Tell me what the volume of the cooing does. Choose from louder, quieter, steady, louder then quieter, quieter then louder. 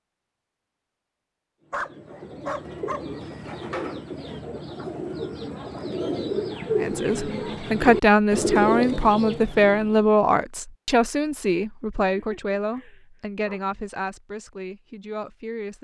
louder.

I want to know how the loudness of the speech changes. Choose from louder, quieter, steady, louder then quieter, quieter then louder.
quieter.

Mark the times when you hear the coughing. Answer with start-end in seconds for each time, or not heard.
not heard.